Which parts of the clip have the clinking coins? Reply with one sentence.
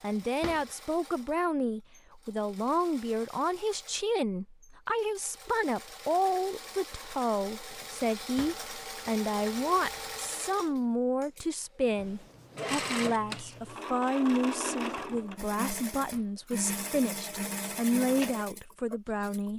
You can't hear the clinking coins here.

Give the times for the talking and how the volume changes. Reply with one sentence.
You can hear the talking from 0.0 to 19.5 s, at a steady volume.